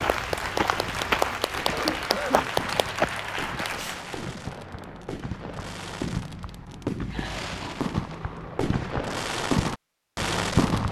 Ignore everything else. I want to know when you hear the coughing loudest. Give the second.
2 s.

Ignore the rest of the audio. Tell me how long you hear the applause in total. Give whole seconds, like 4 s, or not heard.
4 s.